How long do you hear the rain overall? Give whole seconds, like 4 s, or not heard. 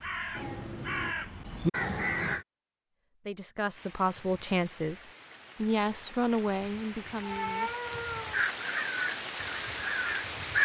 7 s.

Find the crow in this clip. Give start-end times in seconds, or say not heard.
0.0-2.5, 8.3-10.6.